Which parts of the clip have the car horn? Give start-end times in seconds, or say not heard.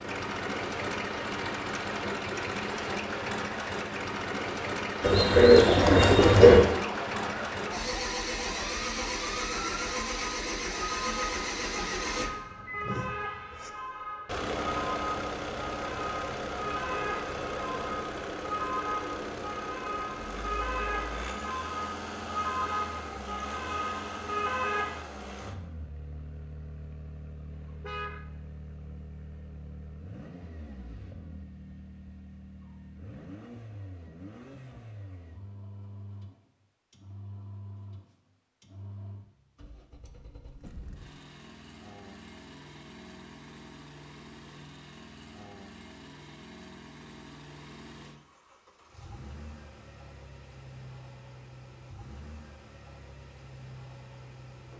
27.5-28.2.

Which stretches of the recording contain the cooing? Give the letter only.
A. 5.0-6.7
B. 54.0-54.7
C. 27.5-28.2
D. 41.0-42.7
A.